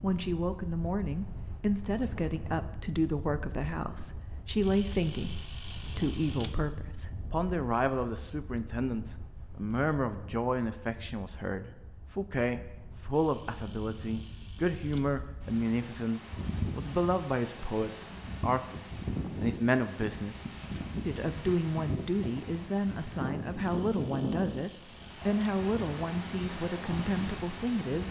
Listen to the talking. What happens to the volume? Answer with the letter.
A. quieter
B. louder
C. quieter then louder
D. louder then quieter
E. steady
E.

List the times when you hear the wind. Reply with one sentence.
The wind can be heard from 0.0 to 28.0 s.